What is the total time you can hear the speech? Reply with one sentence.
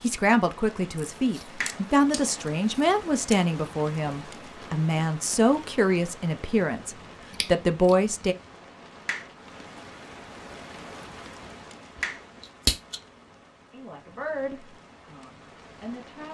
You can hear the speech for 11 seconds altogether.